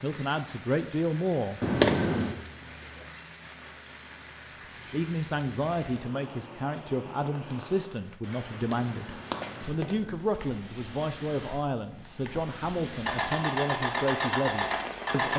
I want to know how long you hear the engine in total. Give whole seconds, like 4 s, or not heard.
2 s.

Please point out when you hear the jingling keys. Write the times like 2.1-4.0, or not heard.
1.6-2.4, 8.5-10.2.